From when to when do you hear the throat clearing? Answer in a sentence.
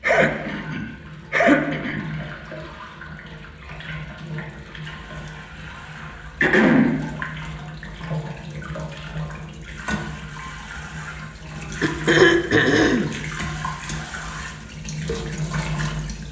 The throat clearing can be heard from 0.0 to 2.1 s, from 6.4 to 7.0 s and from 11.8 to 13.1 s.